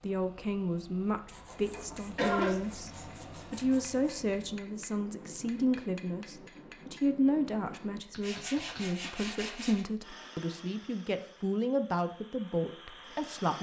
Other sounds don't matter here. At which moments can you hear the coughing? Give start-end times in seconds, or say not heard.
1.4-2.5.